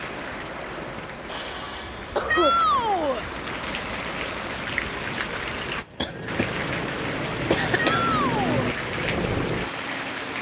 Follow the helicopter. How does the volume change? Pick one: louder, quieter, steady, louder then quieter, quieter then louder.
louder.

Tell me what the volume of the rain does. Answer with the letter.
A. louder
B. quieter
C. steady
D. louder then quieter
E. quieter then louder
A.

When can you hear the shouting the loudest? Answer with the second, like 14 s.
3 s.